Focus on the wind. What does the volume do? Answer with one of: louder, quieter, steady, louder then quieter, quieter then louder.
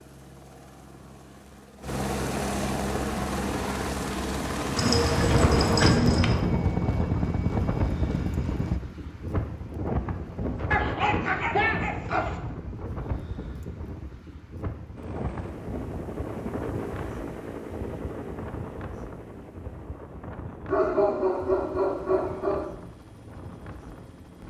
quieter.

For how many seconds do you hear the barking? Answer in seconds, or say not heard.
5 s.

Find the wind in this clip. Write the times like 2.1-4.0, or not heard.
5.2-24.4.